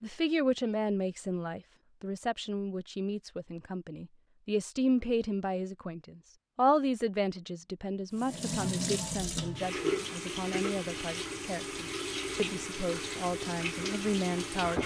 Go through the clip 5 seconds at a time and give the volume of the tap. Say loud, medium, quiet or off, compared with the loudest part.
off, loud, loud.